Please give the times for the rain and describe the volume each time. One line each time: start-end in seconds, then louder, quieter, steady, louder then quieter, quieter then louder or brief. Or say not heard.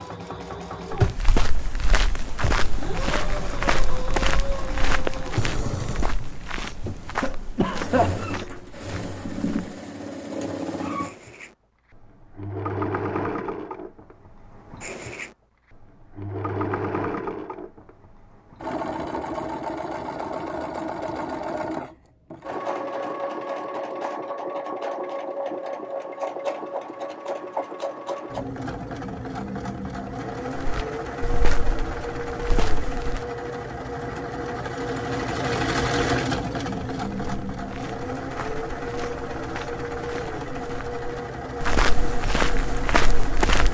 not heard.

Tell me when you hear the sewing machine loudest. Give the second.
36 s.